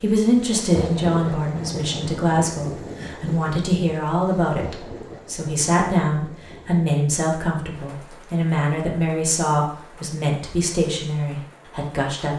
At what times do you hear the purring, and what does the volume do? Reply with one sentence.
The purring can't be heard in this clip.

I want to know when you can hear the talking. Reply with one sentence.
You can hear the talking from 0.0 to 12.3 s.